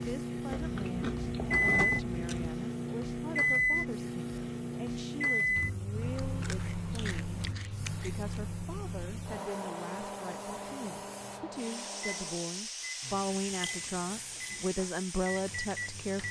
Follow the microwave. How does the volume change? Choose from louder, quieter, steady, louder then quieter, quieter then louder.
quieter.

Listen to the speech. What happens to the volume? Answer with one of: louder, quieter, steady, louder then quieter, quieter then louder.
louder.